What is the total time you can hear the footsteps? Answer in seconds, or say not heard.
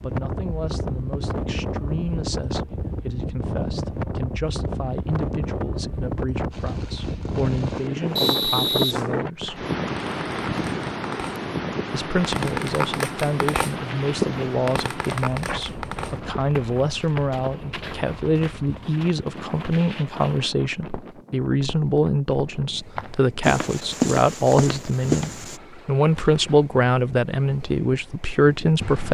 12 s.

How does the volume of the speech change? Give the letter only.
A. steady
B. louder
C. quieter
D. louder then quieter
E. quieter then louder
B.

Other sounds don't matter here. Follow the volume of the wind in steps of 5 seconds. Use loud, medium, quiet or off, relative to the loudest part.
loud, loud, loud, medium, quiet, quiet.